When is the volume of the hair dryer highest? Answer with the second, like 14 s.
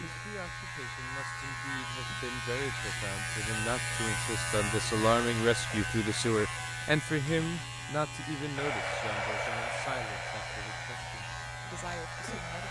9 s.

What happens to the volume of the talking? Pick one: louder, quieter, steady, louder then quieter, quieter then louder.
louder then quieter.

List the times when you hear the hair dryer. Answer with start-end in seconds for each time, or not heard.
8.6-12.6.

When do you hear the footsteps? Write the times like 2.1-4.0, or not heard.
not heard.